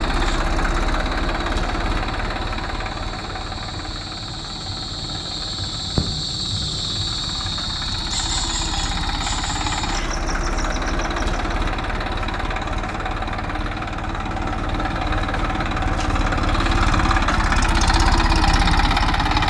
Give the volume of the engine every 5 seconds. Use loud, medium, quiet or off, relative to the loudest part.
medium, medium, medium, loud.